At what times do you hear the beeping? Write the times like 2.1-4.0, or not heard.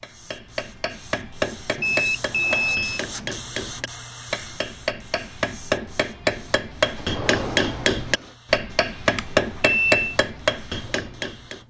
1.8-3.0, 9.1-10.0.